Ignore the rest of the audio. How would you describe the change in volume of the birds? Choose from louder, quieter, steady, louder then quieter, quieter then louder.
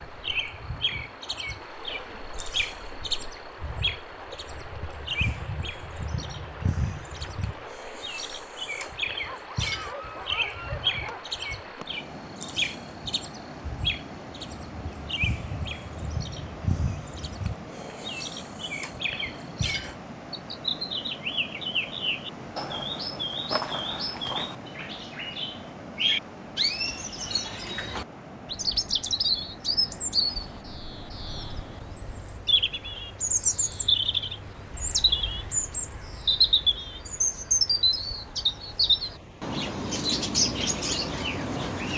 louder.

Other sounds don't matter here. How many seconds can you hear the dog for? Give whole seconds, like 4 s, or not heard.
2 s.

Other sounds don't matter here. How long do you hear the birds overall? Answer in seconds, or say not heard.
42 s.